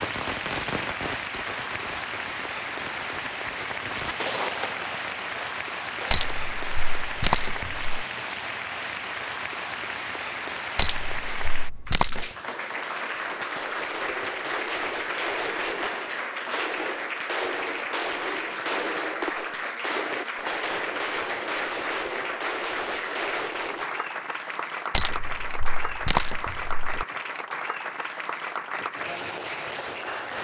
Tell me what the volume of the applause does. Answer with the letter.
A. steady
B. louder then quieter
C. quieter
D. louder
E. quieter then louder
A.